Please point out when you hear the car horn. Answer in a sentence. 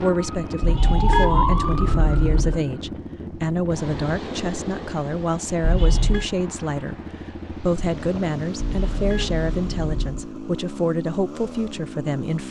The car horn can be heard from 0.6 to 2.6 s, from 5.6 to 6.2 s and from 8.6 to 10.2 s.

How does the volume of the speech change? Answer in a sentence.
The volume of the speech stays about the same.